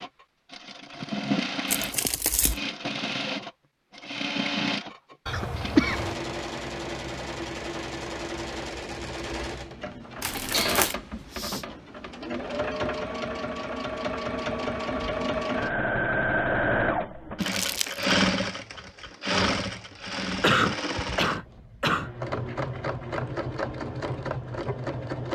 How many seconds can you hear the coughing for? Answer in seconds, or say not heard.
4 s.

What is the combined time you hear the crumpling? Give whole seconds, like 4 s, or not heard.
2 s.